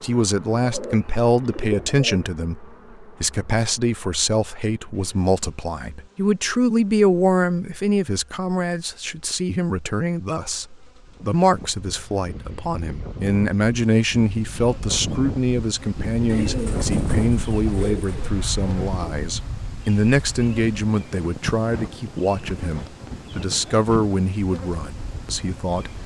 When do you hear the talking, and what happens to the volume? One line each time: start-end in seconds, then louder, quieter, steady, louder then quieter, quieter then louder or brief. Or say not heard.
0.0-26.0 steady.